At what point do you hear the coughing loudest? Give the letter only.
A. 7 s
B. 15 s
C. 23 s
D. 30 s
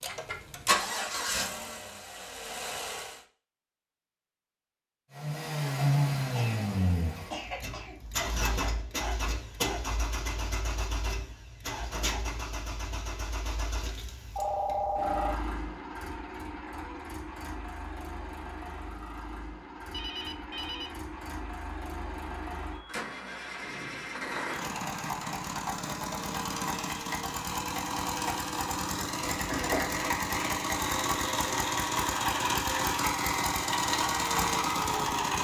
D.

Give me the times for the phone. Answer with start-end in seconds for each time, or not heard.
14.3-15.4, 19.9-20.9.